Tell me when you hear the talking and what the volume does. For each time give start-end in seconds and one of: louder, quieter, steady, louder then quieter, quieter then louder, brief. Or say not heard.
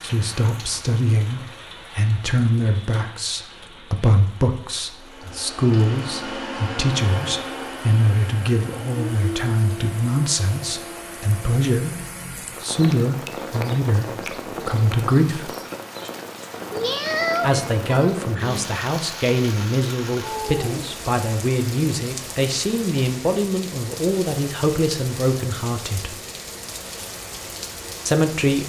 0.0-15.5 steady
17.4-26.1 steady
28.1-28.6 brief.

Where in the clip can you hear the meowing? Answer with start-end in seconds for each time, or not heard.
16.7-18.1.